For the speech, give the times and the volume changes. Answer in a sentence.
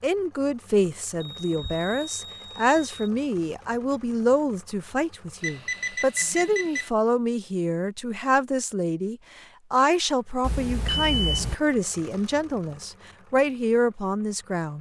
The speech can be heard from 0.0 to 14.7 s, at a steady volume.